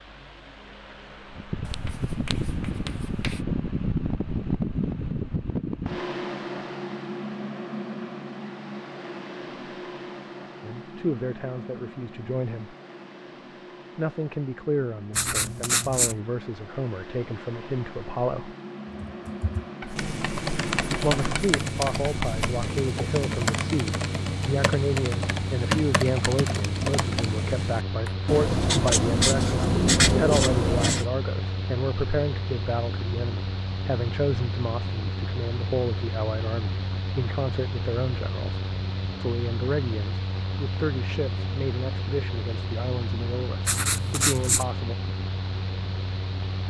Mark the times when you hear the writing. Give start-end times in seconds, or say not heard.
1.6-3.4, 15.1-16.1, 19.8-22.4, 28.2-31.1, 43.6-44.6.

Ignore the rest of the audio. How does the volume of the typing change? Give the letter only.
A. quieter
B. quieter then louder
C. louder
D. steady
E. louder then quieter
D.